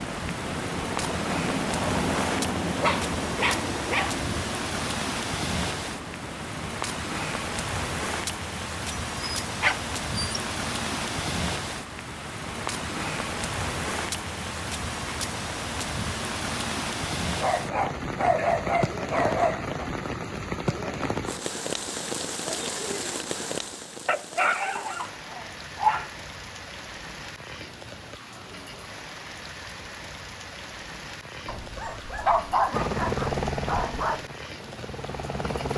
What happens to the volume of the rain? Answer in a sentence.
The volume of the rain goes down.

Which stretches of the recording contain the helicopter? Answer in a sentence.
The helicopter can be heard from 0.0 to 6.8 s and from 32.7 to 35.7 s.